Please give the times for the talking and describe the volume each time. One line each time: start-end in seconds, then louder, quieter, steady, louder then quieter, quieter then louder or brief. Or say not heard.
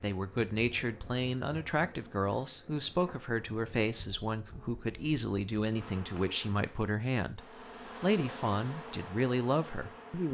0.0-7.4 steady
8.0-10.2 brief.